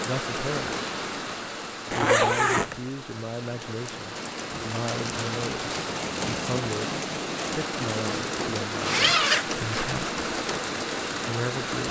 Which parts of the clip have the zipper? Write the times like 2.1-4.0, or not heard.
1.9-2.8, 8.8-9.8.